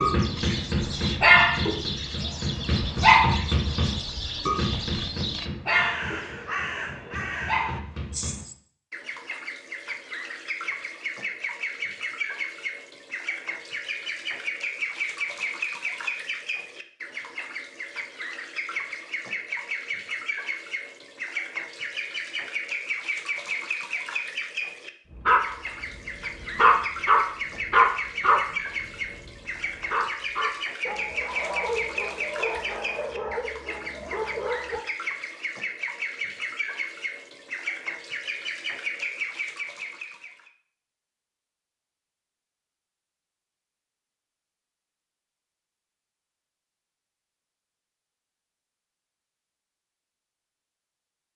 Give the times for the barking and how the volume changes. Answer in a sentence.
You can hear the barking from 0.0 to 8.4 s, getting quieter; and from 25.1 to 34.9 s, getting quieter.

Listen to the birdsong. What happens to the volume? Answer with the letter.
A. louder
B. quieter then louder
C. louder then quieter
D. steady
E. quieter
D.